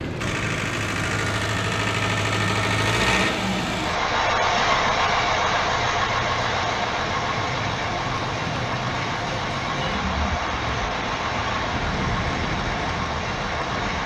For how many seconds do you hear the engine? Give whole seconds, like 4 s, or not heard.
14 s.